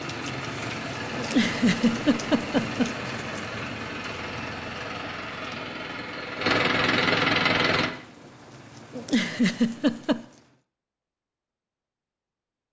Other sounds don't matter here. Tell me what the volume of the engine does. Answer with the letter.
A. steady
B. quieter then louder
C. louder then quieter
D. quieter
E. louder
E.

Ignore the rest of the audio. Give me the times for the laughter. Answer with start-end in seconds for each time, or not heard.
1.1-3.0, 8.9-10.2.